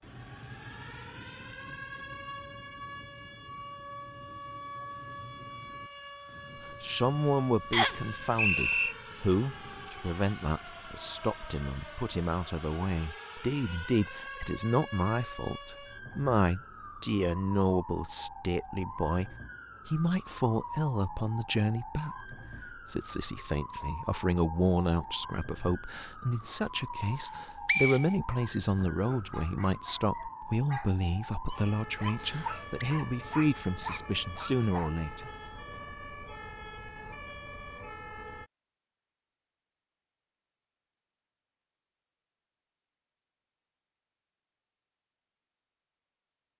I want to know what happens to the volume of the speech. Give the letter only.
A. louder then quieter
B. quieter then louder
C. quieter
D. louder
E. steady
E.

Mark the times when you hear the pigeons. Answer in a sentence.
You can't hear the pigeons here.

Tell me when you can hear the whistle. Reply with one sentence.
The whistle can be heard from 7.7 to 8.9 s, from 27.1 to 28.1 s and from 32.1 to 32.9 s.